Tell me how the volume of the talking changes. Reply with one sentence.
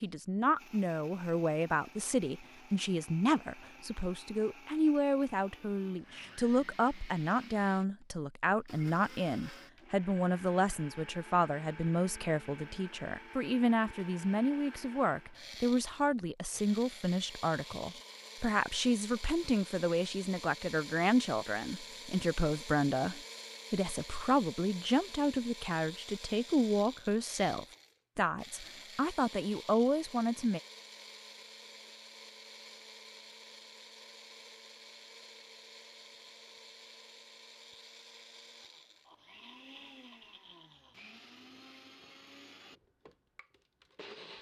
The loudness of the talking stays about the same.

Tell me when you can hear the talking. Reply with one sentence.
You can hear the talking from 0.0 to 30.6 s.